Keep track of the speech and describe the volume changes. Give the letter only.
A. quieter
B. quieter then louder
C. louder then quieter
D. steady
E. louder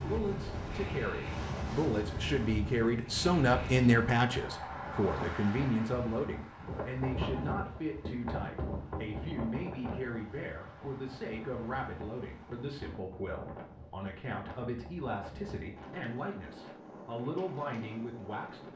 A.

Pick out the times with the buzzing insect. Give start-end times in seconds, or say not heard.
not heard.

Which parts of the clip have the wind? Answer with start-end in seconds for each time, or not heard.
0.0-18.7.